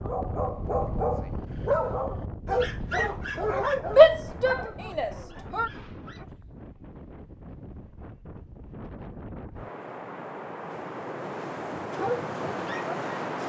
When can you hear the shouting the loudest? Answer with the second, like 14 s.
4 s.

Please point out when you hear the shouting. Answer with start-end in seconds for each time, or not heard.
4.0-5.7.